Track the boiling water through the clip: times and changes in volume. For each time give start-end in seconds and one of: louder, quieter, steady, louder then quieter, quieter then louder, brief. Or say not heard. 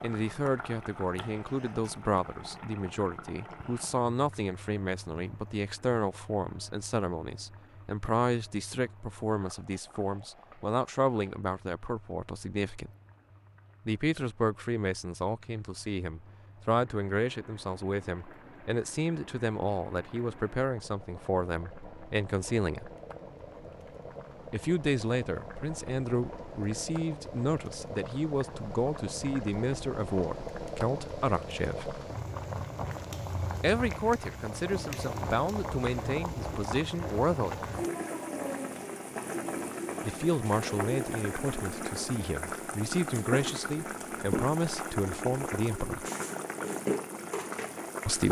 0.0-48.2 quieter then louder.